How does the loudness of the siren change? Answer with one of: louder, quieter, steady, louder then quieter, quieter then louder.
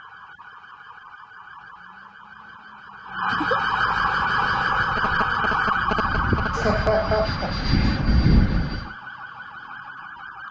louder then quieter.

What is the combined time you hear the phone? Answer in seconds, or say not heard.
2 s.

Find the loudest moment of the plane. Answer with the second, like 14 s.
8 s.